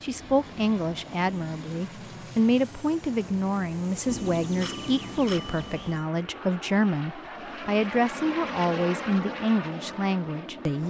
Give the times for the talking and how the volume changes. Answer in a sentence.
You can hear the talking from 0.0 to 10.8 s, at a steady volume.